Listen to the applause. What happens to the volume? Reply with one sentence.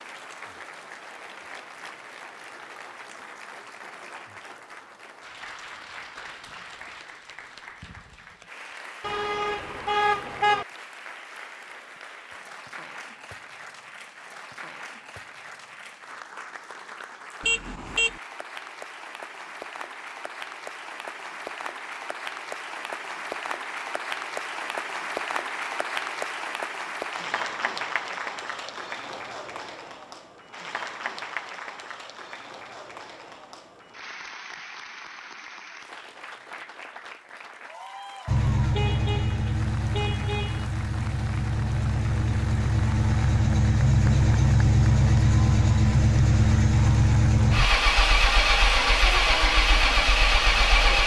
The volume of the applause goes up, then down.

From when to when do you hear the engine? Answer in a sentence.
The engine can be heard from 38.2 to 51.0 s.